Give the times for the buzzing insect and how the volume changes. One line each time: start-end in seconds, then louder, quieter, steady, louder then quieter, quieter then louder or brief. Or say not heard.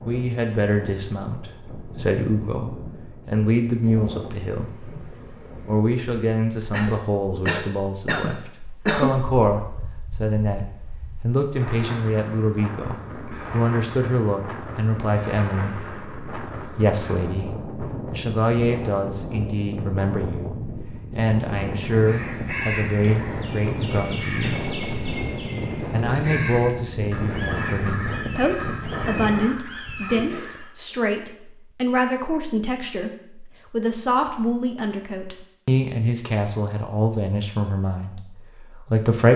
not heard.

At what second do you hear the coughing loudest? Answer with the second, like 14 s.
9 s.